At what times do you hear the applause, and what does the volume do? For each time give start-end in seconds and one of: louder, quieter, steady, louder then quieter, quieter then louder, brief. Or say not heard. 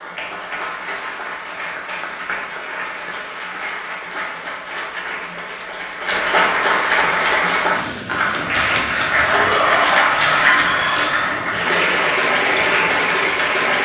0.0-13.8 louder.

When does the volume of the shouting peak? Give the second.
10 s.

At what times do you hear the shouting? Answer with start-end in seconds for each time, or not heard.
9.3-11.3.